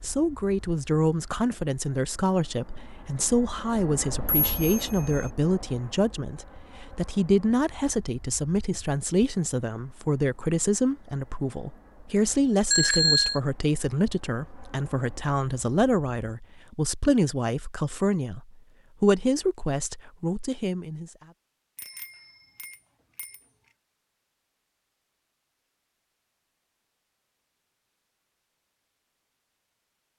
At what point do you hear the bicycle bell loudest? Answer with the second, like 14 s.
13 s.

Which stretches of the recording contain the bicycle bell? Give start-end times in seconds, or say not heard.
4.2-5.3, 12.7-13.4, 21.8-23.4.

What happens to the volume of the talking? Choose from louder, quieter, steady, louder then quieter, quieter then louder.
steady.